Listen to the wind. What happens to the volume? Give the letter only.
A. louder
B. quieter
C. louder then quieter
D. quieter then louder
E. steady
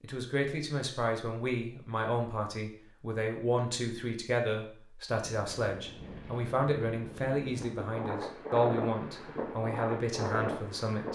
A.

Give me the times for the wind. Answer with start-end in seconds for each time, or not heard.
5.3-11.0.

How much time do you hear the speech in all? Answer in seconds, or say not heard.
11 s.